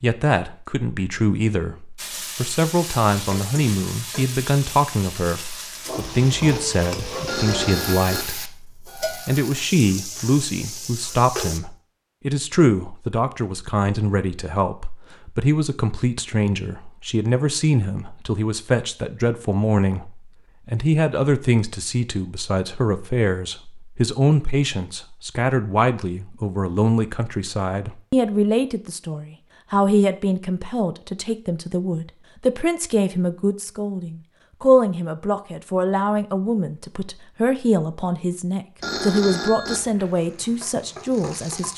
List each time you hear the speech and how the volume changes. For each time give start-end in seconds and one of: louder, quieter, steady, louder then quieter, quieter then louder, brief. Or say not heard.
0.0-41.7 steady.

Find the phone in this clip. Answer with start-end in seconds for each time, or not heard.
7.2-8.2, 38.8-39.8.